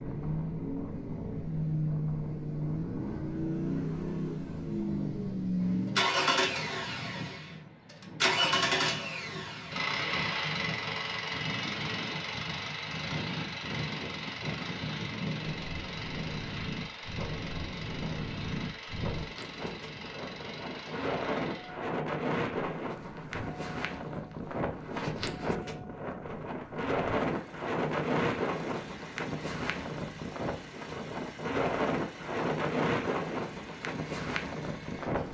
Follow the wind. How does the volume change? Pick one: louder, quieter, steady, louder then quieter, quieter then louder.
louder.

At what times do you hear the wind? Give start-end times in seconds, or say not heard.
0.0-35.2.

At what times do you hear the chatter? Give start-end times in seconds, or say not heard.
not heard.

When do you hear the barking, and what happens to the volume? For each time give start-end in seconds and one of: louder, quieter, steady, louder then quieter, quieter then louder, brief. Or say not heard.
not heard.